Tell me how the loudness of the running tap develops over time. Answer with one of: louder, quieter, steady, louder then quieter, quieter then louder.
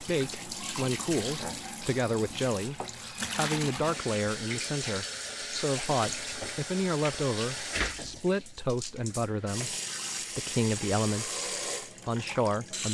steady.